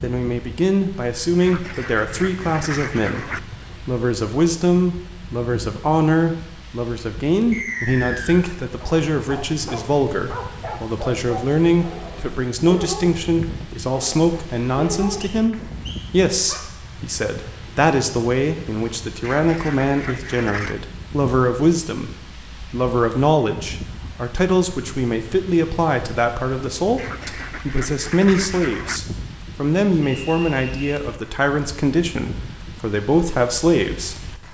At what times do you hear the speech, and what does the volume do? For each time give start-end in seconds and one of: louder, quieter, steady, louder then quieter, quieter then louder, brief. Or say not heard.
0.0-34.4 steady.